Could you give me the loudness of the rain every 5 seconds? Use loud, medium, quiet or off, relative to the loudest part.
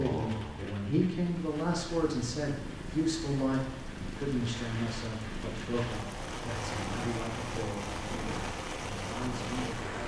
medium, loud.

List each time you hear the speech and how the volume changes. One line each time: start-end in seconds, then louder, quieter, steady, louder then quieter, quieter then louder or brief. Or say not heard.
0.0-10.0 quieter.